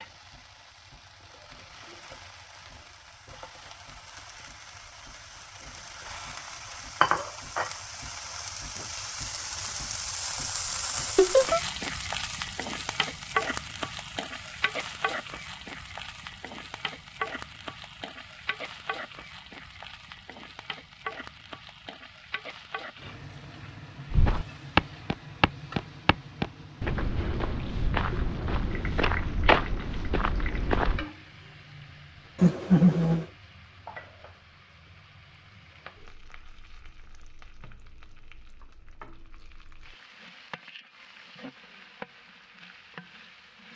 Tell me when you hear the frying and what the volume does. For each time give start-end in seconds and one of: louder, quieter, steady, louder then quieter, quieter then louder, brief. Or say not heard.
0.0-43.7 quieter.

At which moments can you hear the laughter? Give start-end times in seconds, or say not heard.
11.2-11.6, 32.4-33.2.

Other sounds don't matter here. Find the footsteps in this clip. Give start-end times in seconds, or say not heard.
24.1-31.1.